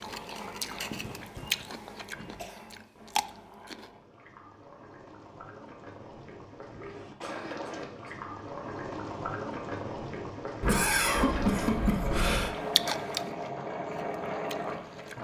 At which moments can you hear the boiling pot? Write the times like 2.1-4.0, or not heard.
0.0-15.2.